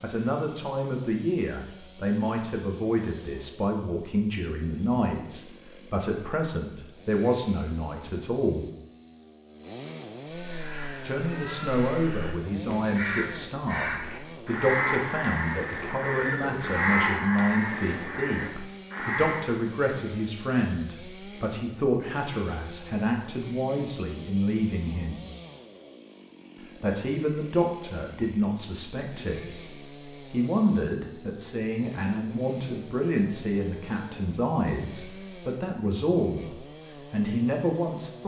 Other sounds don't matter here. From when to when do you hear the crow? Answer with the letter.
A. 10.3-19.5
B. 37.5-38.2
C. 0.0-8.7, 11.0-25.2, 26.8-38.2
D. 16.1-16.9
A.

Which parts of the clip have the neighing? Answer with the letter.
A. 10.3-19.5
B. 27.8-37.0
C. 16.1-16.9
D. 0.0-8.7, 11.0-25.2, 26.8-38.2
C.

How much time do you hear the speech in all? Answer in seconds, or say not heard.
34 s.